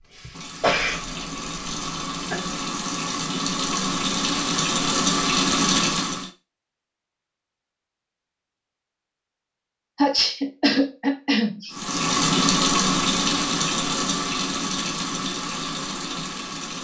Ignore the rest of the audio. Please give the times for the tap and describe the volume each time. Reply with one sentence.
You can hear the tap from 0.0 to 6.3 s, getting louder; and from 11.7 to 16.7 s, getting quieter.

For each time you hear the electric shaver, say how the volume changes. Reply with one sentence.
The electric shaver can't be heard in this clip.